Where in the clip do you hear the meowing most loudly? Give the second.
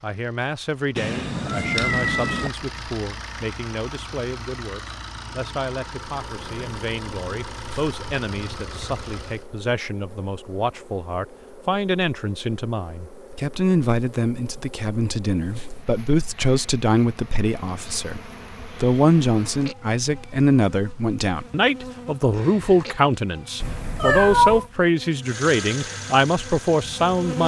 24 s.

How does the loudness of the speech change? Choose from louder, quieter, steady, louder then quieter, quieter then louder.
louder.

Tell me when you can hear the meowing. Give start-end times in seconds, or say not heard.
0.9-2.5, 23.6-24.6.